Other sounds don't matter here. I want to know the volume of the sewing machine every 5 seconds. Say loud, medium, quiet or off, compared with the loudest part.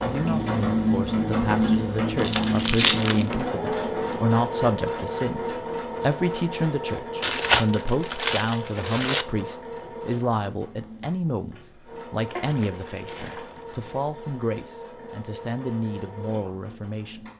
loud, medium, quiet, quiet.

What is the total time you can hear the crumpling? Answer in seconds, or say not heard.
5 s.